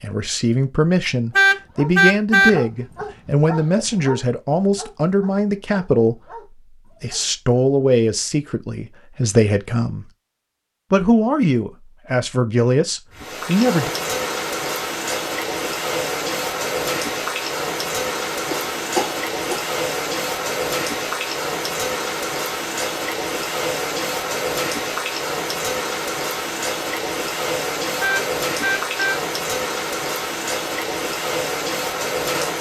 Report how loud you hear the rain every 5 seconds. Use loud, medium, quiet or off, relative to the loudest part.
off, off, loud, loud, loud, loud, loud.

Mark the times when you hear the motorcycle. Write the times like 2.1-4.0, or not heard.
not heard.